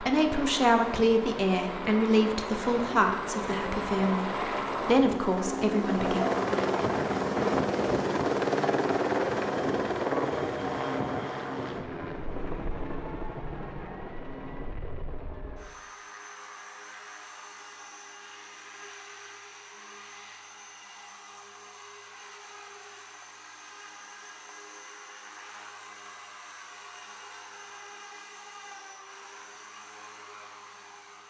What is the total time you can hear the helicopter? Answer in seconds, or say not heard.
31 s.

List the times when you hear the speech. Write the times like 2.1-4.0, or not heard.
0.0-6.2.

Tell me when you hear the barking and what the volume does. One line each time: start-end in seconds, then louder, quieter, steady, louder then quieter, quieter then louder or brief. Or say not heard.
not heard.